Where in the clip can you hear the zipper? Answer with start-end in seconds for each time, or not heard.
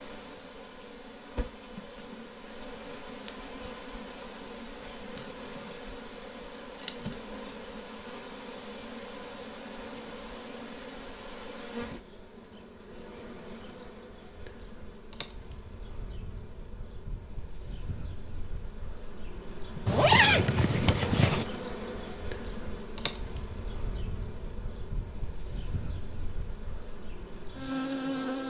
19.9-21.4.